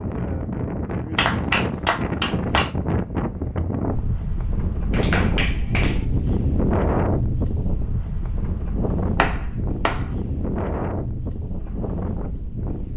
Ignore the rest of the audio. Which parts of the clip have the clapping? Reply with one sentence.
You can hear the clapping from 1.1 to 2.7 s, from 4.9 to 6.0 s and from 9.2 to 10.1 s.